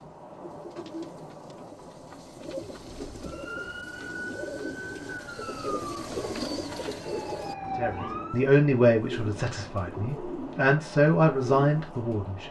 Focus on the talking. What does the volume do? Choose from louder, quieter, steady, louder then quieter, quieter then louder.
quieter then louder.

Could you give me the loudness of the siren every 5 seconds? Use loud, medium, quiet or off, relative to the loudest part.
loud, loud, off.